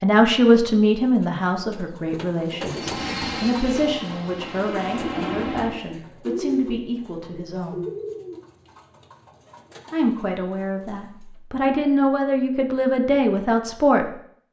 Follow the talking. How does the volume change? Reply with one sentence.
The loudness of the talking goes down, then up.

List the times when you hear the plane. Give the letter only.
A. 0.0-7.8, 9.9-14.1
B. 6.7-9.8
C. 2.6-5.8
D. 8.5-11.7
C.